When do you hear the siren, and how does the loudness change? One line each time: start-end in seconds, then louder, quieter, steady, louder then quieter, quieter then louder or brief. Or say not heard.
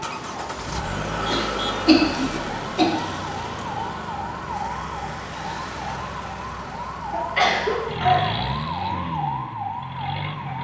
0.0-10.5 steady.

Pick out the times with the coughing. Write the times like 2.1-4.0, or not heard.
1.2-2.9, 7.1-8.4.